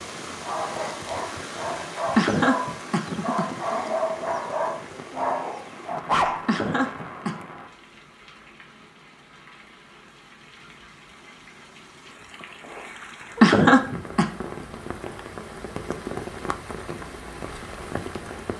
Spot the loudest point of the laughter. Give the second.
14 s.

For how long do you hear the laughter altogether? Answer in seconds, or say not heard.
3 s.